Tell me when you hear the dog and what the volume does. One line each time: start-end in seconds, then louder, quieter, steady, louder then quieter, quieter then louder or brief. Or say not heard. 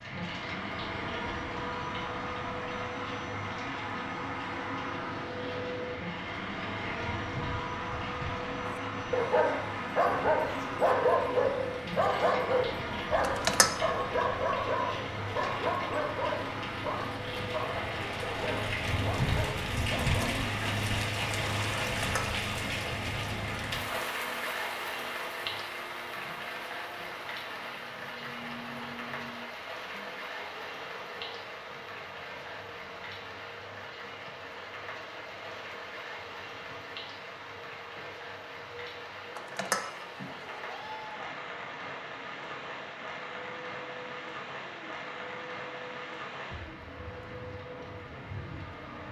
8.7-20.3 quieter.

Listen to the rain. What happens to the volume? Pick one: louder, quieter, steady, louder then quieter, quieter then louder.
louder then quieter.